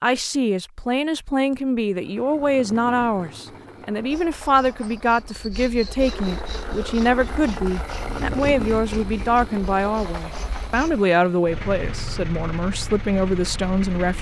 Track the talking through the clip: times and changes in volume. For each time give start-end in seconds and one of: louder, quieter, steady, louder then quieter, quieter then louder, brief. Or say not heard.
0.0-14.1 steady.